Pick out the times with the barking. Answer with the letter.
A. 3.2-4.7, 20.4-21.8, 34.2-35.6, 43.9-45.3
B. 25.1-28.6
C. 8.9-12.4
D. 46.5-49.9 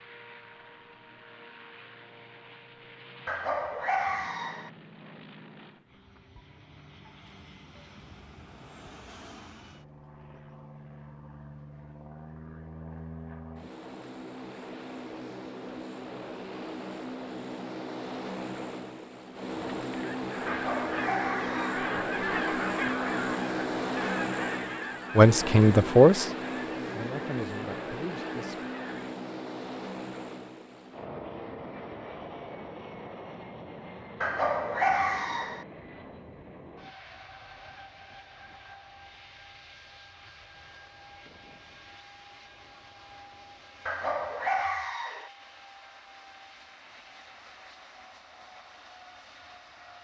A.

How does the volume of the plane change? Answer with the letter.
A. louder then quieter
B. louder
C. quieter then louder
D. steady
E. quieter
A.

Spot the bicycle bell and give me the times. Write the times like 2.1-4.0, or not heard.
not heard.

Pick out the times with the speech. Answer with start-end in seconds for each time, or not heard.
25.1-28.6.